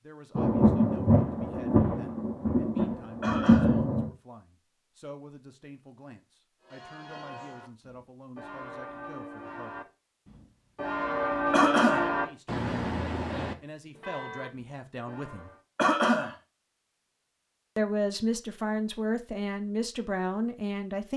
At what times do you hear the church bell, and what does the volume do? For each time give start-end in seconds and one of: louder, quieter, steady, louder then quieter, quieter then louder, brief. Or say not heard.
6.6-15.7 louder then quieter.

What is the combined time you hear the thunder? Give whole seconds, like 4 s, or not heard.
4 s.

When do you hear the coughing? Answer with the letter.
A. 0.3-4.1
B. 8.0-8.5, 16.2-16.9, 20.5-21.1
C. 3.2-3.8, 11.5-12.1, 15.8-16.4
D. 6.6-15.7
C.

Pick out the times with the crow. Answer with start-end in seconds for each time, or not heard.
not heard.